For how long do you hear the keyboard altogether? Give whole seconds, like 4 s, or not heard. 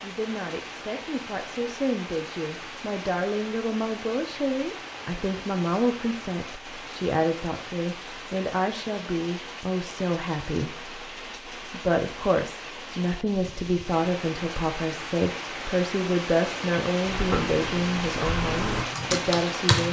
3 s.